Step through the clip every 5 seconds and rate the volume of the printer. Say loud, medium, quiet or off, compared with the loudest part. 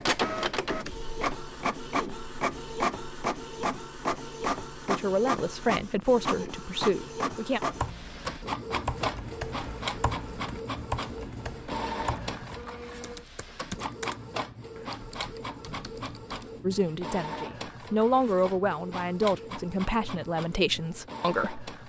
loud, loud, medium, medium, medium.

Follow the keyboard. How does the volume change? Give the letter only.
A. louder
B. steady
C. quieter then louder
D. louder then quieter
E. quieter
E.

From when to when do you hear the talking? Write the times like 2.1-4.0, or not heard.
4.8-7.6, 16.6-21.6.